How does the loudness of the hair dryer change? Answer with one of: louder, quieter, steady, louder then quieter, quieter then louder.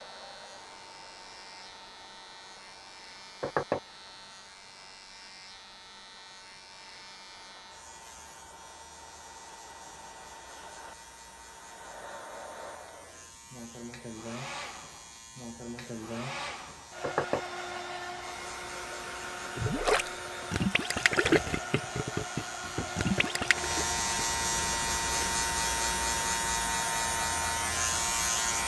louder.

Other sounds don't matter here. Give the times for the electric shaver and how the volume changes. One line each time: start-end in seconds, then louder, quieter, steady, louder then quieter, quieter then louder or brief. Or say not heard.
0.0-28.6 louder.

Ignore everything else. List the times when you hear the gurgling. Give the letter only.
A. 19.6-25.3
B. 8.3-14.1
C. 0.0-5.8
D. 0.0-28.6
A.